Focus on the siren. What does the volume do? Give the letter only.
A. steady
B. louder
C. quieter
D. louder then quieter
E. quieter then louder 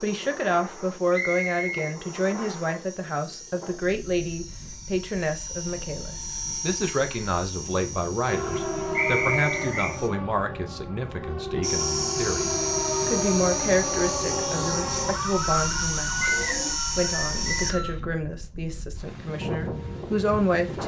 E.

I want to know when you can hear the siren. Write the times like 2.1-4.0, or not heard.
8.2-16.8.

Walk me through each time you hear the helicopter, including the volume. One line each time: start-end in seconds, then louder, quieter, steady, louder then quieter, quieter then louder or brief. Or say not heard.
0.0-10.1 louder then quieter
11.6-17.8 steady.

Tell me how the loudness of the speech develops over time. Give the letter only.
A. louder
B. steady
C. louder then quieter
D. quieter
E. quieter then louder
B.